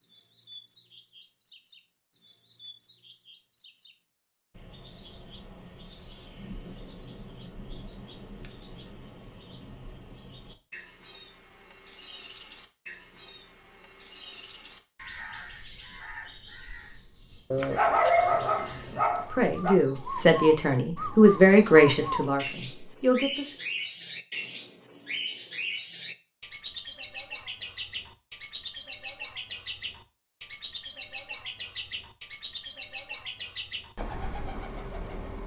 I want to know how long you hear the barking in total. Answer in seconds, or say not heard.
2 s.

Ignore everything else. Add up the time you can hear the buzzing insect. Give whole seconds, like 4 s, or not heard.
not heard.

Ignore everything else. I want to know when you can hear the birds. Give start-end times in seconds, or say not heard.
0.0-35.4.